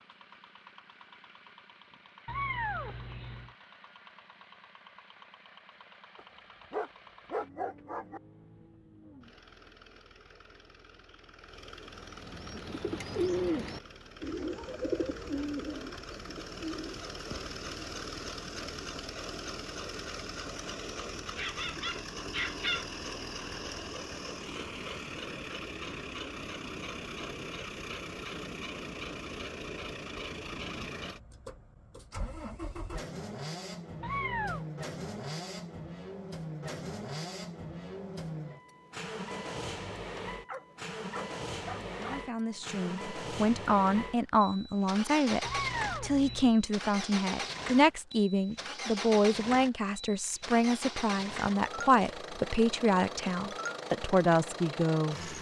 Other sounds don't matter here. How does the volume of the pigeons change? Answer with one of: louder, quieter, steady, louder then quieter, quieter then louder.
louder then quieter.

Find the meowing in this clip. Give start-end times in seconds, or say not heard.
2.2-3.5, 34.0-34.6, 45.4-46.5.